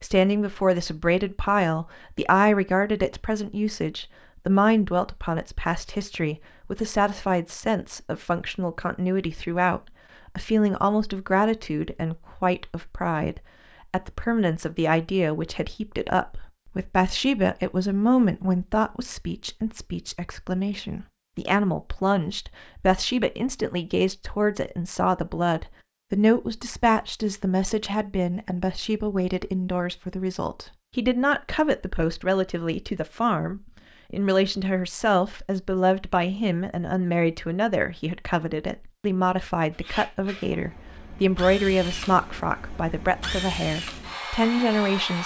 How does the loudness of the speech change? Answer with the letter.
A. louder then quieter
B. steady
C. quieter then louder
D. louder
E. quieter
B.